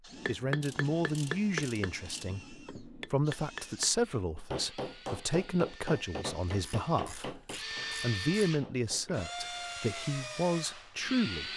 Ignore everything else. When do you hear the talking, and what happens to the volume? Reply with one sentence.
The talking can be heard from 0.2 to 11.5 s, at a steady volume.